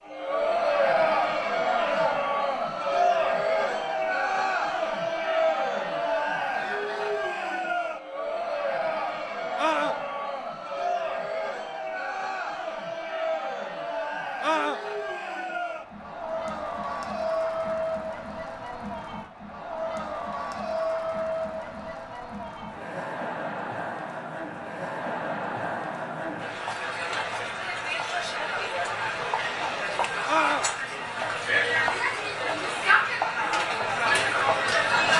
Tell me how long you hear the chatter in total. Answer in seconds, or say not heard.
35 s.